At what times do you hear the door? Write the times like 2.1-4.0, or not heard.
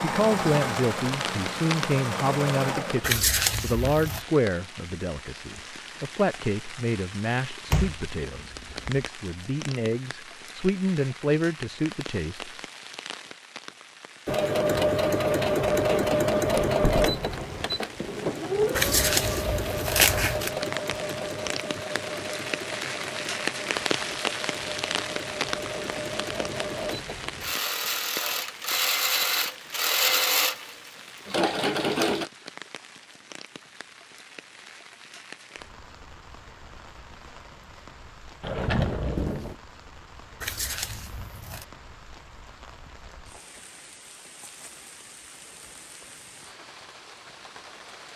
7.7-9.1, 16.5-17.4, 38.4-39.5.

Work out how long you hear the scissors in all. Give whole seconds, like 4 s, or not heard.
4 s.